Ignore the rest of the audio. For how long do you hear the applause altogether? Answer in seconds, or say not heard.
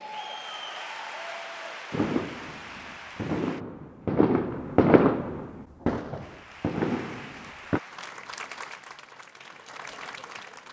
8 s.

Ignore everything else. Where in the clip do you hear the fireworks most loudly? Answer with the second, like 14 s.
5 s.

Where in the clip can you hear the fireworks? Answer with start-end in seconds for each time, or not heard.
1.9-7.8.